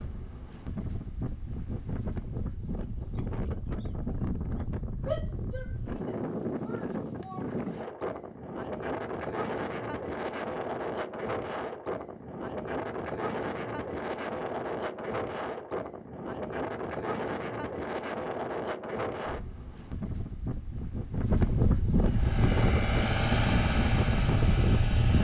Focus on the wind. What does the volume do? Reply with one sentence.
The loudness of the wind goes up.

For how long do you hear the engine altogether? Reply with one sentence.
You can hear the engine for 3 seconds altogether.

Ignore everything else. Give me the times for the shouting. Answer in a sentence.
The shouting can be heard from 5.0 to 7.5 s.